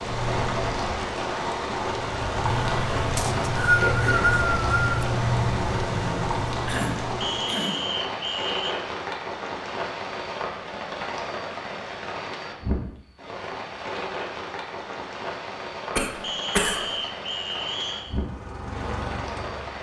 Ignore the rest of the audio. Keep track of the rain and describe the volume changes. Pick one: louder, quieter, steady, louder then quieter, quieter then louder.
quieter.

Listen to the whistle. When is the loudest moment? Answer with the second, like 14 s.
4 s.